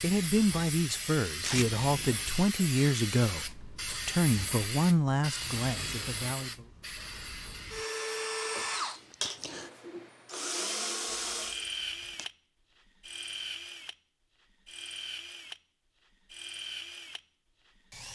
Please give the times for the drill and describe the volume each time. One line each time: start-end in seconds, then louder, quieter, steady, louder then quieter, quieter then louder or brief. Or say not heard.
0.2-18.1 louder then quieter.